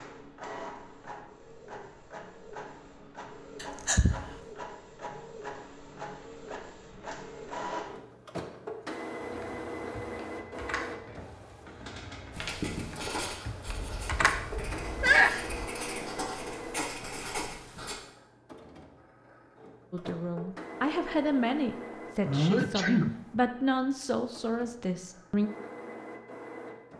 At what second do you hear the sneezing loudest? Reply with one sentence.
The loudest moment of the sneezing is at 15 seconds.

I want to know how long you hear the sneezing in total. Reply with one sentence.
The sneezing can be heard for 4 seconds in total.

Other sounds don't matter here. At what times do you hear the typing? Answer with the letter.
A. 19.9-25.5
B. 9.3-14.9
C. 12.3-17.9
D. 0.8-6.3
B.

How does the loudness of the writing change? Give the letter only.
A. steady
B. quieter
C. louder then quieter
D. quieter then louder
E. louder
D.